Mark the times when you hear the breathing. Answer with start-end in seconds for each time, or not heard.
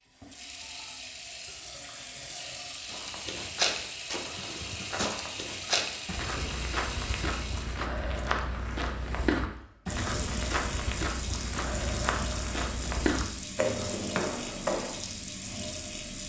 not heard.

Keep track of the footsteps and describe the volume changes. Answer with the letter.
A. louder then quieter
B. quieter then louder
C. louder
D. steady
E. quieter
D.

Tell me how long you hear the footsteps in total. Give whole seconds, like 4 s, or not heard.
12 s.